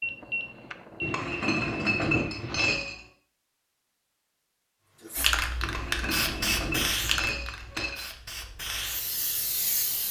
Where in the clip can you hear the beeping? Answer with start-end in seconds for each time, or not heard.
0.0-1.2.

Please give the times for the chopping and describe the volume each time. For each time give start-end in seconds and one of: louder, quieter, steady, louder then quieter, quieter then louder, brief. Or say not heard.
not heard.